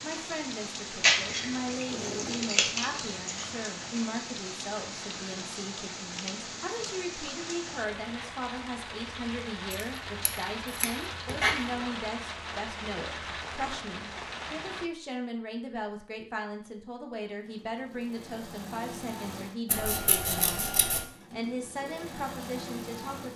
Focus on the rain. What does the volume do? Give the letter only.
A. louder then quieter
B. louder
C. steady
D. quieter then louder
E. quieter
C.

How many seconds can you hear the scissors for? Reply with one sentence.
You can hear the scissors for 6 seconds altogether.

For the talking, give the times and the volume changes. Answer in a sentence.
You can hear the talking from 0.0 to 23.3 s, at a steady volume.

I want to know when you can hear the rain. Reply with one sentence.
The rain can be heard from 0.0 to 14.9 s.